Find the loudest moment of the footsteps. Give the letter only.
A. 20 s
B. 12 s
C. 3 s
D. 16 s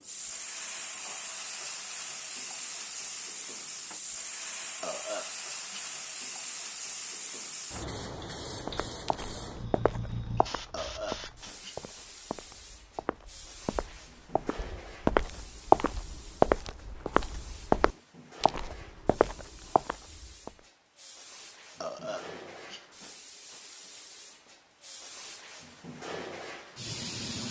D.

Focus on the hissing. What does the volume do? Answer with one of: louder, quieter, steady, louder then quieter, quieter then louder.
quieter then louder.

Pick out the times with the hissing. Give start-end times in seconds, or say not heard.
0.0-27.4.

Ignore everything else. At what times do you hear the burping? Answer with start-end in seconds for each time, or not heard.
4.8-5.8, 10.7-11.9, 21.8-23.1.